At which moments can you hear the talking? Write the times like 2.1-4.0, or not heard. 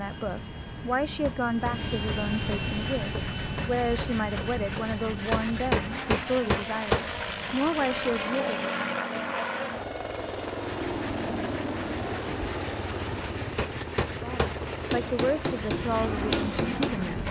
0.0-8.6, 14.1-17.2.